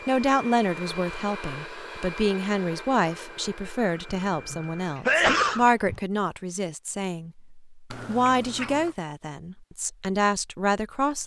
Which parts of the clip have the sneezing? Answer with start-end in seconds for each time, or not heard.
4.5-6.0.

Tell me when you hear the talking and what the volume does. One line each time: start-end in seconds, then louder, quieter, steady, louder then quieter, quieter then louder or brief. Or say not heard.
0.1-11.2 steady.